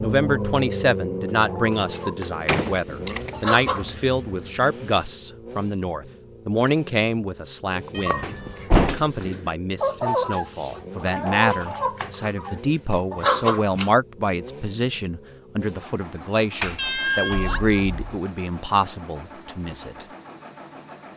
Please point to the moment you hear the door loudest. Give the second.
9 s.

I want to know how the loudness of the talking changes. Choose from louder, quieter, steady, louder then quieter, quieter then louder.
steady.